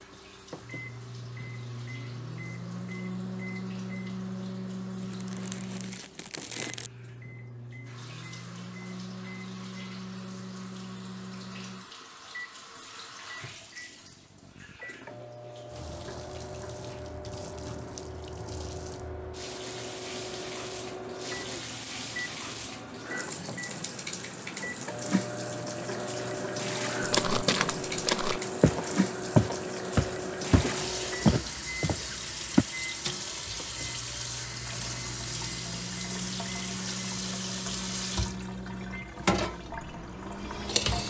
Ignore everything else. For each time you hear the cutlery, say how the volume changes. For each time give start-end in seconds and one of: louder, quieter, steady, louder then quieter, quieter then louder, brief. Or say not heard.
not heard.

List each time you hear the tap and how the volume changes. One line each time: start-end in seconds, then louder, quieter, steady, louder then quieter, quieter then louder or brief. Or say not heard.
0.0-41.0 louder.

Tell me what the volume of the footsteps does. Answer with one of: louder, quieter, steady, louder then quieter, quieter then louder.
louder then quieter.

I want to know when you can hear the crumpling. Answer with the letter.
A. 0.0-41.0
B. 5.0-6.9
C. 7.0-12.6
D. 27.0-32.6
B.